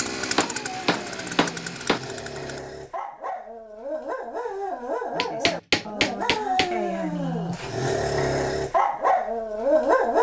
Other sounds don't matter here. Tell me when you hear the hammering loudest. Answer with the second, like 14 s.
6 s.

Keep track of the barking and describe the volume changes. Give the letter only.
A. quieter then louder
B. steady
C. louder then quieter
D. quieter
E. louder
E.